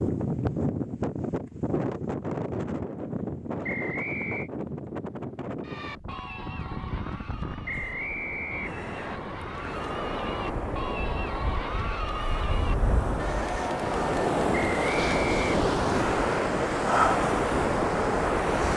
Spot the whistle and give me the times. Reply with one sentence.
You can hear the whistle from 3.6 to 4.5 s, from 7.7 to 9.2 s and from 14.6 to 15.5 s.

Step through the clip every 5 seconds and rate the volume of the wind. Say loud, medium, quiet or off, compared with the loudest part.
medium, quiet, medium, loud.